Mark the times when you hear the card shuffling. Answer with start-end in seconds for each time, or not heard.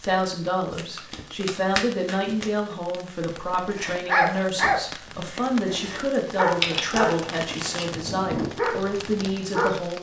0.7-2.5, 6.4-7.9.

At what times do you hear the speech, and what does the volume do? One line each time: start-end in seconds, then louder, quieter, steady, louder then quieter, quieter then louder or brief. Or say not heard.
0.0-9.9 steady.